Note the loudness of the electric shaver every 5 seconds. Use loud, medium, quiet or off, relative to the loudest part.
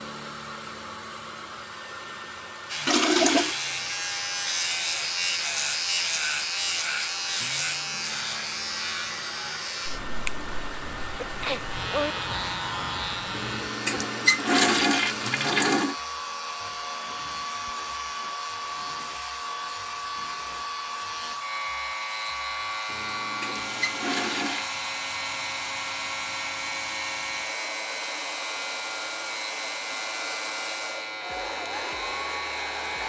loud, loud, medium, medium, medium, medium, medium.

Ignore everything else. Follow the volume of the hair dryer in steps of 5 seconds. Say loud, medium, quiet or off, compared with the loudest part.
medium, medium, loud, loud, loud, loud, loud.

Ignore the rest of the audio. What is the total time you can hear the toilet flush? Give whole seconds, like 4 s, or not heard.
5 s.